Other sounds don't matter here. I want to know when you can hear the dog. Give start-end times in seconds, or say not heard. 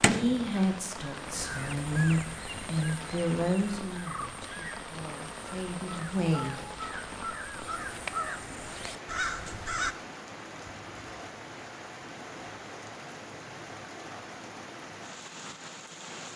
not heard.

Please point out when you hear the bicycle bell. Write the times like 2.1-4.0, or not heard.
not heard.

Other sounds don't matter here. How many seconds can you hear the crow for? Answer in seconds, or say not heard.
10 s.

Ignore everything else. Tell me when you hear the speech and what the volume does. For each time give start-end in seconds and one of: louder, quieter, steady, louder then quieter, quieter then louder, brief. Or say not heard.
0.1-6.8 quieter then louder.